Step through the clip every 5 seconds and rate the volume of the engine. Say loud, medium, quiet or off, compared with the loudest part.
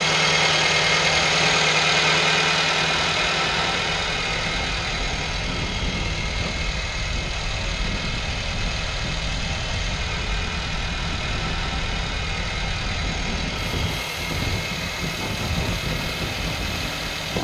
loud, medium, medium, medium.